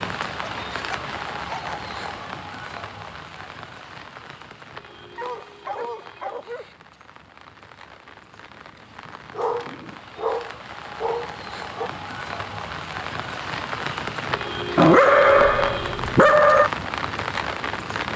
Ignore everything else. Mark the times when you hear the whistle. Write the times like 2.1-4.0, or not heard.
not heard.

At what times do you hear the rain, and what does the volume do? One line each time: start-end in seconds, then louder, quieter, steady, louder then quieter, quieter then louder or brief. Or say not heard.
0.0-18.1 quieter then louder.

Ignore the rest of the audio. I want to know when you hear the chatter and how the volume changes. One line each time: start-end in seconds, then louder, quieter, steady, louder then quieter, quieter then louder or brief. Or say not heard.
not heard.